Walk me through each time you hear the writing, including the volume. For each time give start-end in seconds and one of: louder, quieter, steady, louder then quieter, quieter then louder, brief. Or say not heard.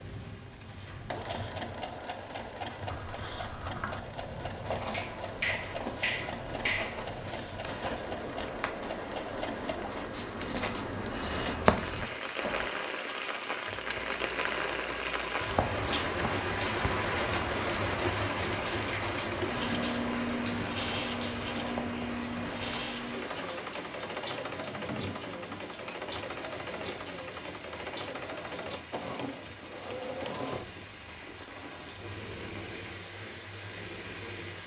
2.9-12.7 louder.